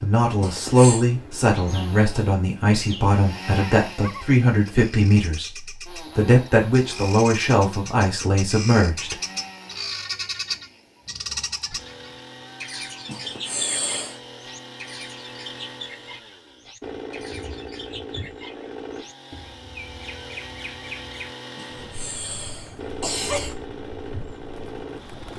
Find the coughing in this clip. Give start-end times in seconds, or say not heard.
0.4-1.1, 13.1-14.2, 21.6-23.6.